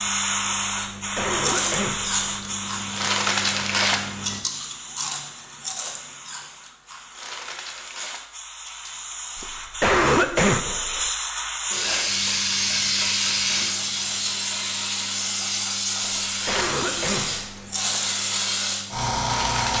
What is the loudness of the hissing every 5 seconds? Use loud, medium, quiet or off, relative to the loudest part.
loud, quiet, loud, loud.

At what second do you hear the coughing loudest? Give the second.
10 s.